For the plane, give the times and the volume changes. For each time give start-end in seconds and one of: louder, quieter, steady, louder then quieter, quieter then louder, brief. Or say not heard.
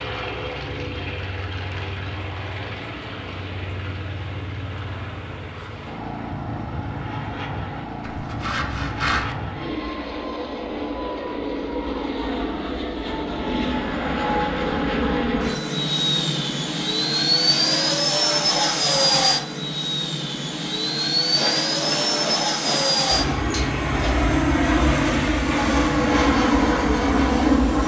0.0-27.8 louder.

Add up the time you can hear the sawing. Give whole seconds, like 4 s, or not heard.
4 s.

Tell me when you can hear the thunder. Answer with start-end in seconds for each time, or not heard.
not heard.